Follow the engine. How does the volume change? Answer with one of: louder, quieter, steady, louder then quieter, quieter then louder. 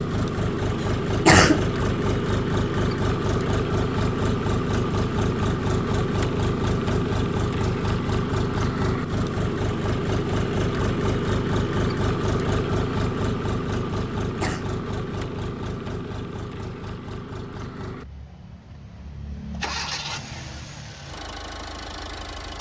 quieter.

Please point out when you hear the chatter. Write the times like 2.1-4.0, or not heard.
not heard.